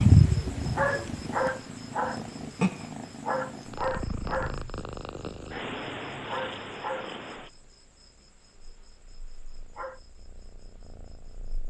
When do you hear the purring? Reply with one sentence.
You can hear the purring from 0.0 to 11.6 s.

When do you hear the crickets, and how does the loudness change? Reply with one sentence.
The crickets can be heard from 0.0 to 11.6 s, getting quieter.